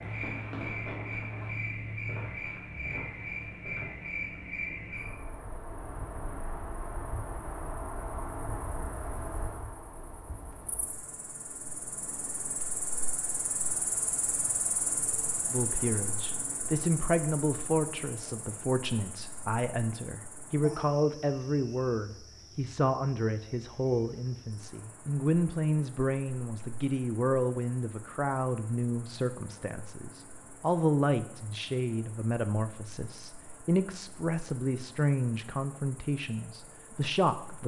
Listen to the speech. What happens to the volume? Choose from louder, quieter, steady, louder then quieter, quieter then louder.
steady.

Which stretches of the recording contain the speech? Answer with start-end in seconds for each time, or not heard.
15.5-37.6.